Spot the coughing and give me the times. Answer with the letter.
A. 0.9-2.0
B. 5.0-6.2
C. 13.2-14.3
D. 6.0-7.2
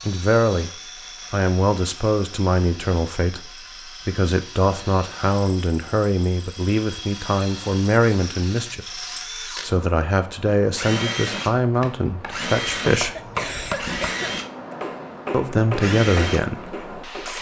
C.